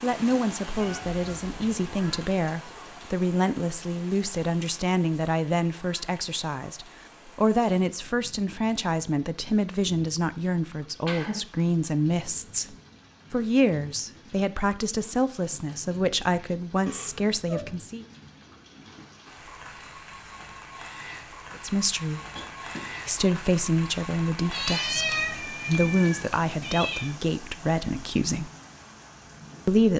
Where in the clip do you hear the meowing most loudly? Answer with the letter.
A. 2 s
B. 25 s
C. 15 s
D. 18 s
B.